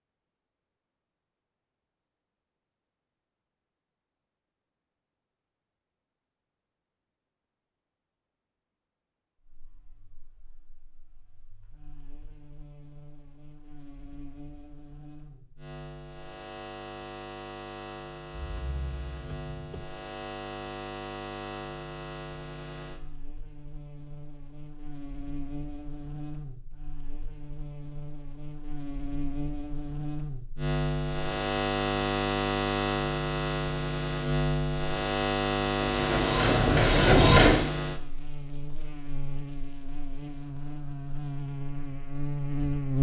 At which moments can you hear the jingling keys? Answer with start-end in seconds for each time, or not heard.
18.4-19.9.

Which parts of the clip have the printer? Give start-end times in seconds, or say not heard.
35.8-37.6.